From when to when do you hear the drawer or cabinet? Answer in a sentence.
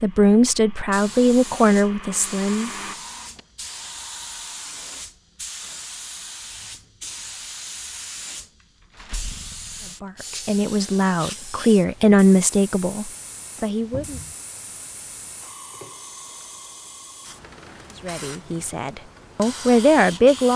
The drawer or cabinet can be heard from 2.8 to 3.5 s and from 13.9 to 14.3 s.